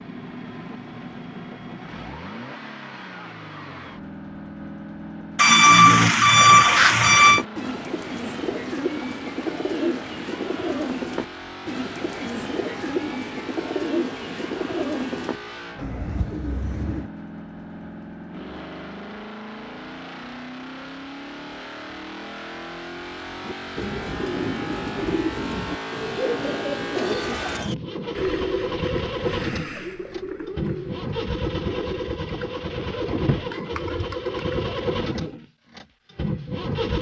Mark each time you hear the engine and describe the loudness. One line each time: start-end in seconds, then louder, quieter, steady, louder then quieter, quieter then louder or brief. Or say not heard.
0.0-36.9 louder.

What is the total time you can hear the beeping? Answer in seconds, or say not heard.
2 s.